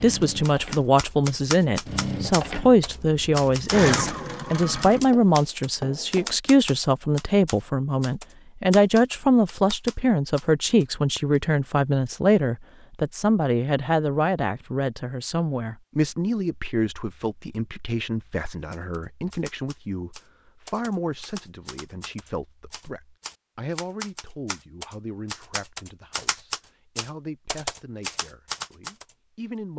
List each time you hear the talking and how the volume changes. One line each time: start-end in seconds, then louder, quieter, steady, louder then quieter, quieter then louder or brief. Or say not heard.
0.0-29.7 quieter.